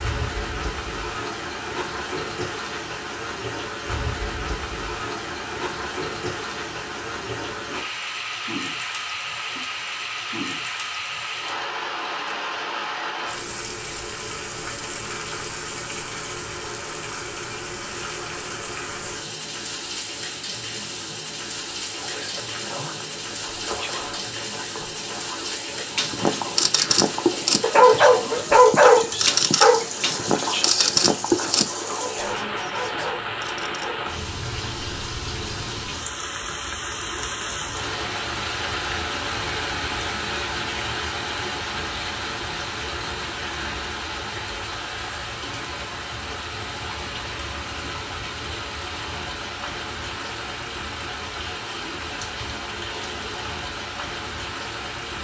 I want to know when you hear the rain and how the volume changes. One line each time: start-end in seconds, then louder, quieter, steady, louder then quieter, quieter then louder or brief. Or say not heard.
0.0-55.1 steady.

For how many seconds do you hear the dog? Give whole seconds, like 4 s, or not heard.
8 s.